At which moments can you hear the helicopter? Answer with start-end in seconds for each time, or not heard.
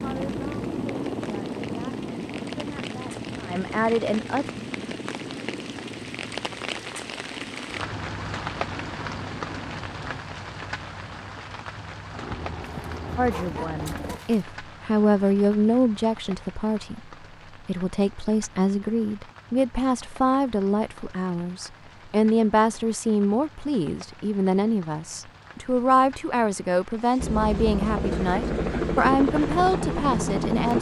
0.0-10.2, 12.1-14.2, 27.1-30.7.